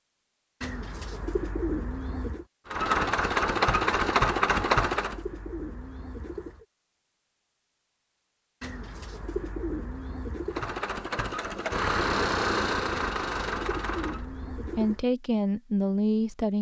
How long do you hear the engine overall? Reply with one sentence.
You can hear the engine for 6 seconds altogether.